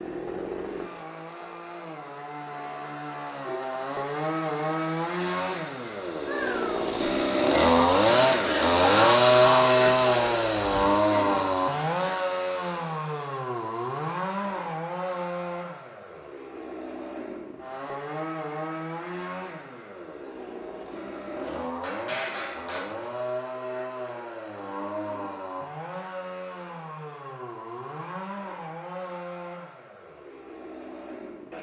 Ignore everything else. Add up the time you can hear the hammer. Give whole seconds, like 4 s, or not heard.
2 s.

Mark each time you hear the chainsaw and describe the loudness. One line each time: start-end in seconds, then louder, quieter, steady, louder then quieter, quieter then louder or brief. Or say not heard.
0.0-31.5 louder then quieter.